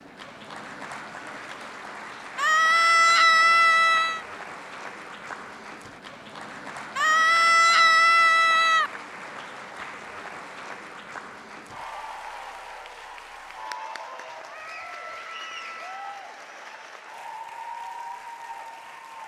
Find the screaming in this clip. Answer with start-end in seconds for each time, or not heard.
2.4-4.2, 7.0-8.9, 14.4-16.2.